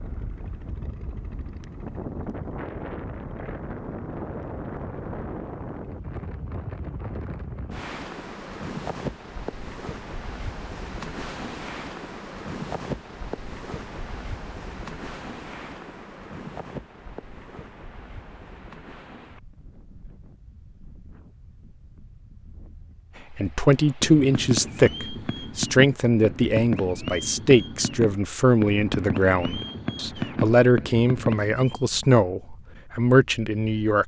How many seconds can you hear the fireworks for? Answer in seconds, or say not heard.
8 s.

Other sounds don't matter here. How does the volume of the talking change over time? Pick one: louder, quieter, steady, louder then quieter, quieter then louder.
steady.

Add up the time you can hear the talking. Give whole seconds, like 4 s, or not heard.
11 s.